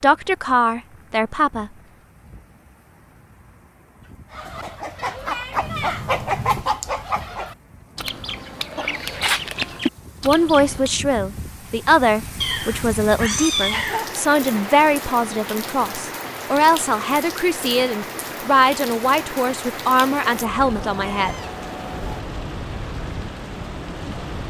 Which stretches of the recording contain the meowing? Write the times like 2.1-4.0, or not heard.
5.6-6.7, 12.4-14.3, 20.2-22.2.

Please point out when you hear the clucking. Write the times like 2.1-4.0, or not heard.
4.3-10.9.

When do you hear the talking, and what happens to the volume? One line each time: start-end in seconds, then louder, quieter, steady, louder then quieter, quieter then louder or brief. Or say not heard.
0.0-1.7 brief
10.2-21.4 steady.